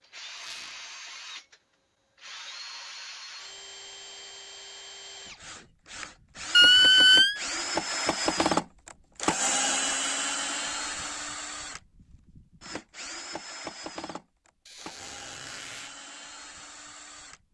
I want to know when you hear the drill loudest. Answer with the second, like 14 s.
8 s.